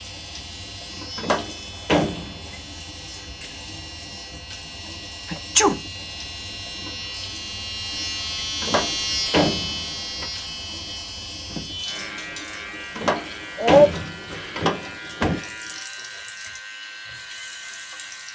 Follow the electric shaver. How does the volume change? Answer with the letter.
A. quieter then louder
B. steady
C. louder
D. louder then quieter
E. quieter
D.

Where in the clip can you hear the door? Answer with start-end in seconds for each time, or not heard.
1.1-2.5, 8.6-10.2, 12.9-15.4.